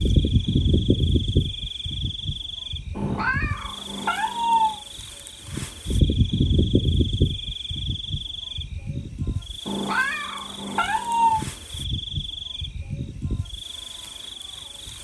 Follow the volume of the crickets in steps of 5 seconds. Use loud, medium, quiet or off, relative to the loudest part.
loud, loud, medium.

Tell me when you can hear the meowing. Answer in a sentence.
You can hear the meowing from 3.0 to 4.8 s and from 9.7 to 11.4 s.